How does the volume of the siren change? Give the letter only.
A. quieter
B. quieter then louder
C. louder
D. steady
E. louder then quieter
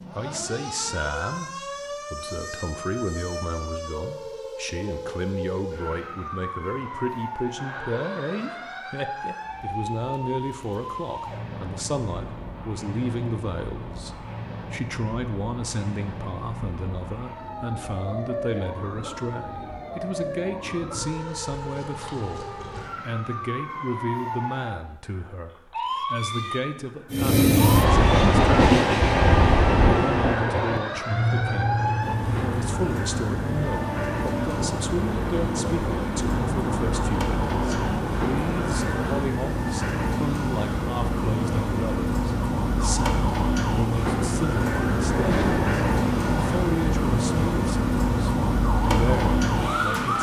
C.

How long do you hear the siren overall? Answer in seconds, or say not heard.
50 s.